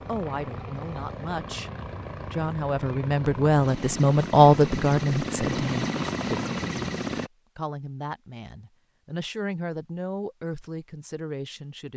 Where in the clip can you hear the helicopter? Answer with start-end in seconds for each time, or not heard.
0.0-7.3.